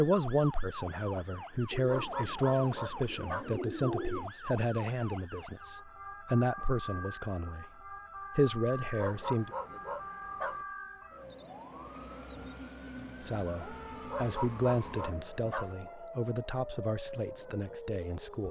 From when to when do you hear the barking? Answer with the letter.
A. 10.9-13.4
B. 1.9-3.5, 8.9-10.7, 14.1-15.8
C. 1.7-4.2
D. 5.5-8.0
B.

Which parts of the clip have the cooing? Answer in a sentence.
You can hear the cooing from 1.7 to 4.2 s.